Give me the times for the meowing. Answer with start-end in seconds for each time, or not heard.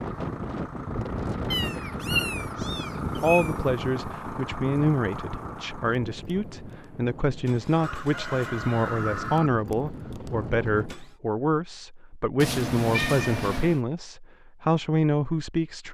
1.5-3.5, 12.3-13.8.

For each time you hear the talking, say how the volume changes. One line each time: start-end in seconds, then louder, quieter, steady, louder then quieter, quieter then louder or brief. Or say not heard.
3.1-15.9 steady.